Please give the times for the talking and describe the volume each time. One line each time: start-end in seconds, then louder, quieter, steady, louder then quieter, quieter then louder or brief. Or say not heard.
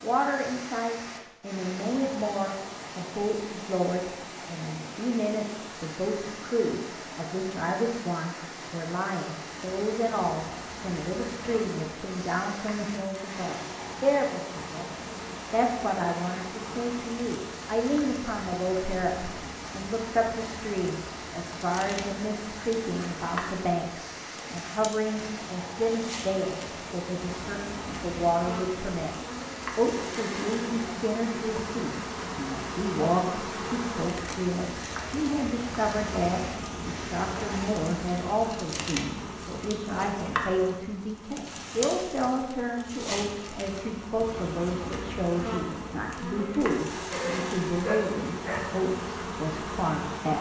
0.0-29.1 steady
29.8-50.3 steady.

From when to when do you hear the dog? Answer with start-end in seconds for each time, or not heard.
47.1-48.7.